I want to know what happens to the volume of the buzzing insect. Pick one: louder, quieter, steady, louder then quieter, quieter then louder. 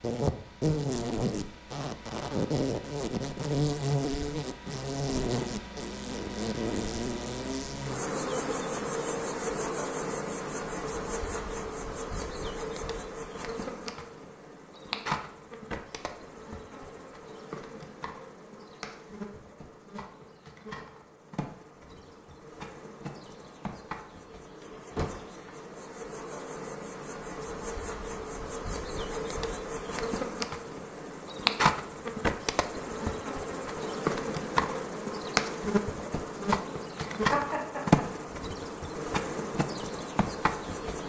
quieter then louder.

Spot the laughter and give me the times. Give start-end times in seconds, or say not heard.
37.0-38.0.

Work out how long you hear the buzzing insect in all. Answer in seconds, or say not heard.
41 s.